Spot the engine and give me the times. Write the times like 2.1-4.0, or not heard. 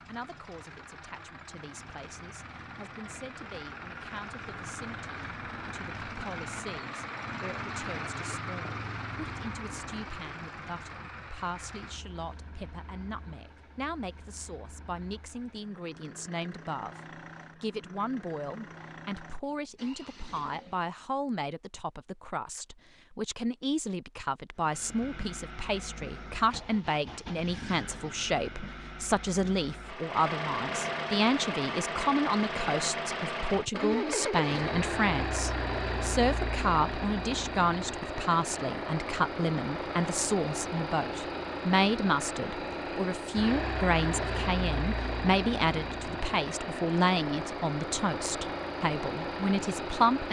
0.0-20.9, 24.6-50.2.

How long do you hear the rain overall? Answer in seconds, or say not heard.
not heard.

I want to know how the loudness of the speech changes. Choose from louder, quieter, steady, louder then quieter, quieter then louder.
louder.